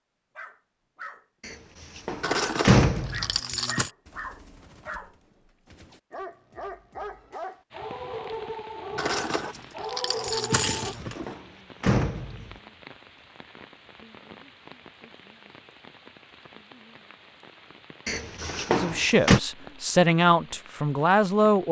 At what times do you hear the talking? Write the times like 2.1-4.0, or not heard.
18.7-21.6.